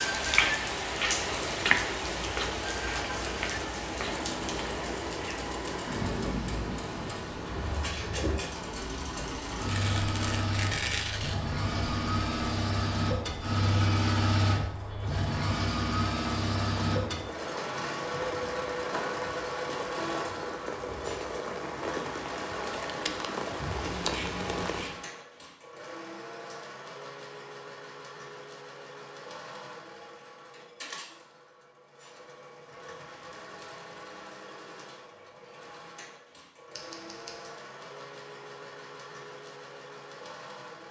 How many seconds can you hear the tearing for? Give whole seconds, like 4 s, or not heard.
2 s.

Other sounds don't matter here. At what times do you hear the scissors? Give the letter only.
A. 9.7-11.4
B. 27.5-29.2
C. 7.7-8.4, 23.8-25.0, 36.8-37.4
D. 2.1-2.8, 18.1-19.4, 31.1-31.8
C.